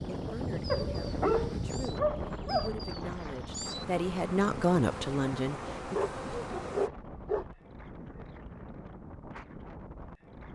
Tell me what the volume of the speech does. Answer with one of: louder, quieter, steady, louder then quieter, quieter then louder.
louder.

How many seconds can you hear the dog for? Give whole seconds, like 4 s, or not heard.
4 s.